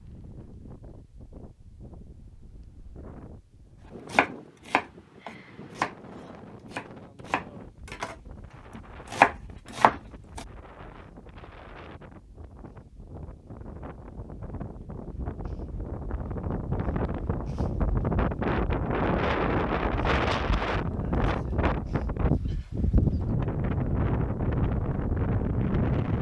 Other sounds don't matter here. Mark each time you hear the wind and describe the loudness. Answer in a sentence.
The wind can be heard from 0.0 to 26.1 s, getting louder.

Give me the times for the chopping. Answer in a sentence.
The chopping can be heard from 4.1 to 10.4 s.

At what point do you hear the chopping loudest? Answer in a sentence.
The loudest moment of the chopping is at 9 seconds.